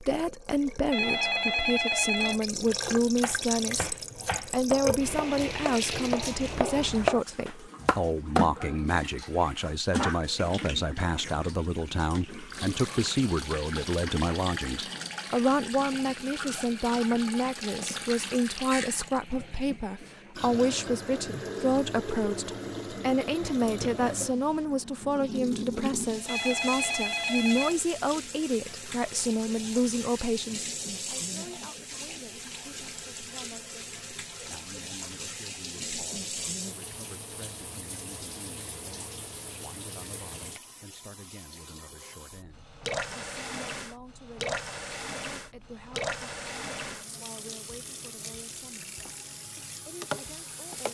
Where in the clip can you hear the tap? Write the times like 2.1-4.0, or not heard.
0.0-50.9.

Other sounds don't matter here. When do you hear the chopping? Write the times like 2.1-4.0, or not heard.
3.1-8.4.